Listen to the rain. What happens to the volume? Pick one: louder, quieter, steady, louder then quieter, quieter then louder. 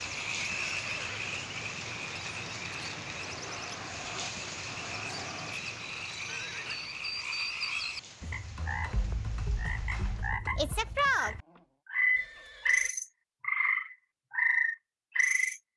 quieter.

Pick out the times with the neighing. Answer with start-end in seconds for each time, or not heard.
0.3-1.4, 6.2-6.9, 12.2-12.9.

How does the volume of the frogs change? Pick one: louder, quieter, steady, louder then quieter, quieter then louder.
louder.